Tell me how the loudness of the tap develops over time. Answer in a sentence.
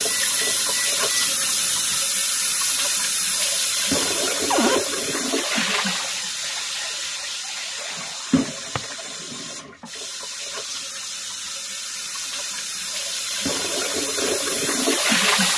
The loudness of the tap goes down, then up.